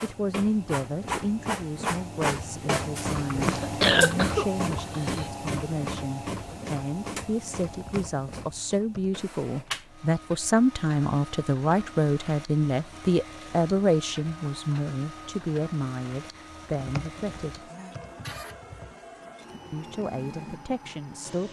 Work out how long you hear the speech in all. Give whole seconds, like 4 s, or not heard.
19 s.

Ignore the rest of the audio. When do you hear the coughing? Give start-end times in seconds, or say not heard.
3.3-5.2.